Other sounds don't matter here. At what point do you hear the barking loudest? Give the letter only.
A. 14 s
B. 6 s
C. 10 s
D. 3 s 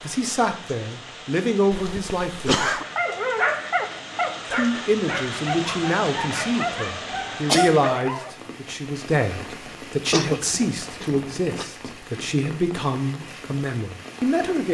D.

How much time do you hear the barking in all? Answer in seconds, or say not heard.
6 s.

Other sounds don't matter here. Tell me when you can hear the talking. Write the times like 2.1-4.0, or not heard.
0.0-2.7, 4.5-14.6.